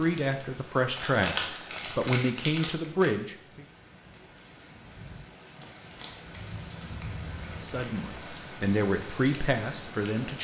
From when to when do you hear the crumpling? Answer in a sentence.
You can hear the crumpling from 0.9 to 3.1 s and from 5.6 to 8.3 s.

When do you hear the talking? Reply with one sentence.
The talking can be heard from 0.0 to 3.6 s and from 7.6 to 10.3 s.